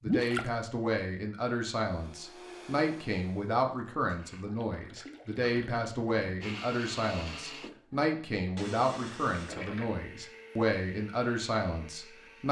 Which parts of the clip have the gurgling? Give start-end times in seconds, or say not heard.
0.0-0.5, 4.3-6.5, 9.3-9.9.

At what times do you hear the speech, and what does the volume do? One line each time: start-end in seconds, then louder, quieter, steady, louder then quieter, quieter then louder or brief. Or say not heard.
0.0-12.4 steady.